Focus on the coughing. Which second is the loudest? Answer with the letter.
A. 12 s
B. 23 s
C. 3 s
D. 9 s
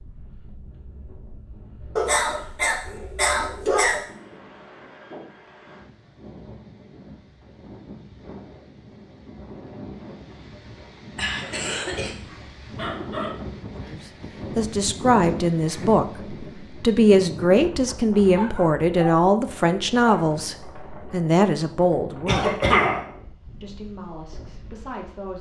B.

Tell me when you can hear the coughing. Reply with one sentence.
The coughing can be heard from 2.0 to 4.0 s, from 11.2 to 12.2 s and from 22.2 to 23.0 s.